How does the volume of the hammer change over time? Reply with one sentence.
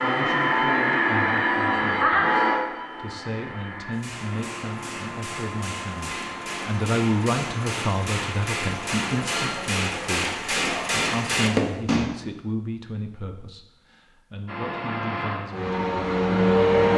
The loudness of the hammer goes up.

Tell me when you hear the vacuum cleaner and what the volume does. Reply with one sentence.
You can hear the vacuum cleaner from 0.0 to 9.5 s, getting quieter; and briefly from 14.4 to 16.9 s.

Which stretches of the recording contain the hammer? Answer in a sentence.
The hammer can be heard from 3.9 to 12.1 s.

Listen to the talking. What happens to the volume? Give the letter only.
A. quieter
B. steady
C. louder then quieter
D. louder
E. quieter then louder
C.